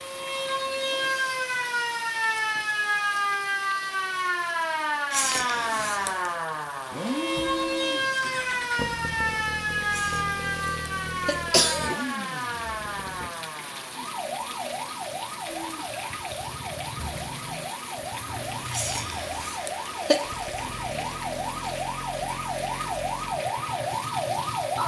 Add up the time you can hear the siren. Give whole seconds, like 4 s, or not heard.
25 s.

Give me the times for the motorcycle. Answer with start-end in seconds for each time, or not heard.
6.9-13.3, 15.4-24.8.